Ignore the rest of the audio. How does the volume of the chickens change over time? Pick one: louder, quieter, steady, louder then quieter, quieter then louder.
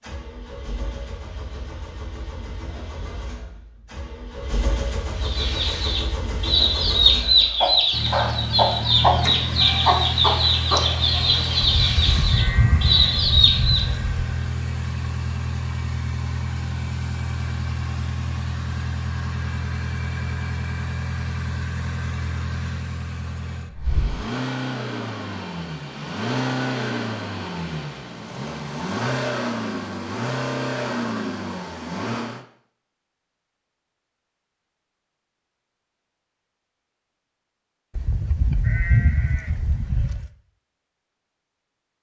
steady.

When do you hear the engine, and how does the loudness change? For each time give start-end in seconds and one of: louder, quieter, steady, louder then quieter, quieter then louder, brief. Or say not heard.
0.0-32.5 louder.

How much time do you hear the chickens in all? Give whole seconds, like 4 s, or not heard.
9 s.